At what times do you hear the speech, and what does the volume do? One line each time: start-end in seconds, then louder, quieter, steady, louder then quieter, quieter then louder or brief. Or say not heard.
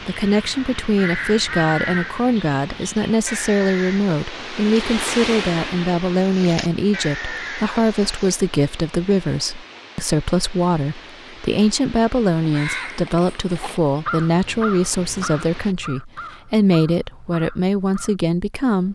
0.1-18.8 steady.